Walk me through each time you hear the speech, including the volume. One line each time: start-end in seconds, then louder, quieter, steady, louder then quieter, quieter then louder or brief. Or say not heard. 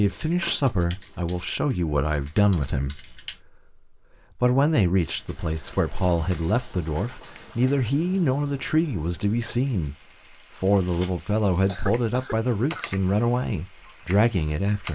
0.0-14.9 steady.